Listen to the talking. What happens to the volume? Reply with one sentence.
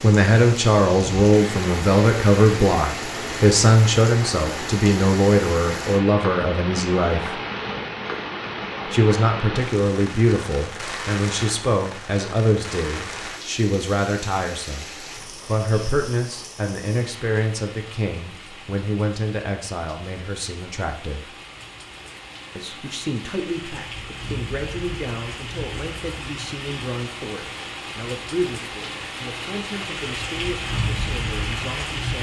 The volume of the talking goes down.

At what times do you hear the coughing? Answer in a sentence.
You can't hear the coughing here.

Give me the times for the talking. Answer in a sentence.
You can hear the talking from 0.0 to 7.4 s, from 8.8 to 21.4 s and from 22.6 to 32.1 s.